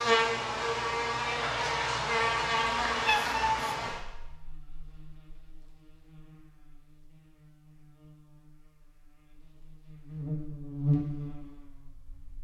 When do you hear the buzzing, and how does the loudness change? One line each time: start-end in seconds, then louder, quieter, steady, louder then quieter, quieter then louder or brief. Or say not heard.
0.0-12.3 quieter then louder.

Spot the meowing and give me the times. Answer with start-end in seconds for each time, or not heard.
2.5-4.0.